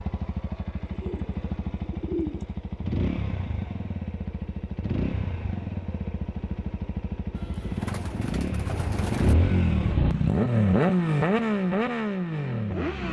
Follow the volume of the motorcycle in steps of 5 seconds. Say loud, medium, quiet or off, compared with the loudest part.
medium, medium, loud.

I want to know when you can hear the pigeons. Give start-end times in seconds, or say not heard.
0.9-2.5, 7.3-9.3.